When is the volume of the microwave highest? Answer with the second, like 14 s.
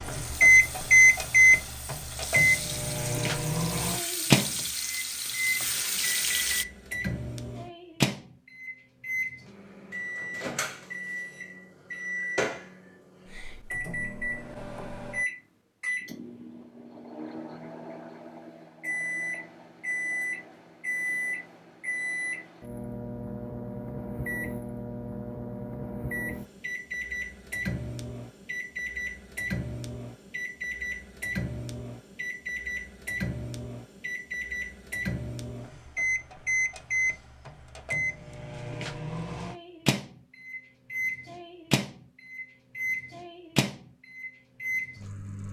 1 s.